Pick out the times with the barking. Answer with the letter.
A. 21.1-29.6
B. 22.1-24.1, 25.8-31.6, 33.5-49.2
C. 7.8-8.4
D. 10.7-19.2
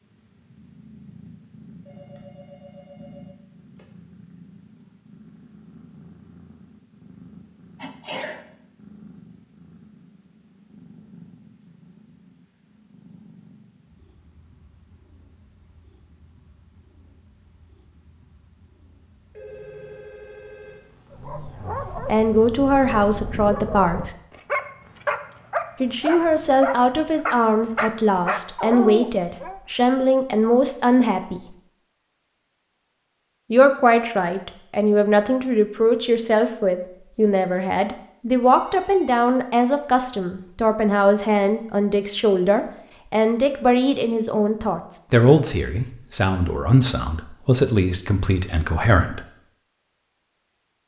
A.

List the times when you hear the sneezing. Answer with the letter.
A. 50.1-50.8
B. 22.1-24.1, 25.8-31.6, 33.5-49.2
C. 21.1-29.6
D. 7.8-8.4
D.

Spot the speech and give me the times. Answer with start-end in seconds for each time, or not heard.
22.1-24.1, 25.8-31.6, 33.5-49.2.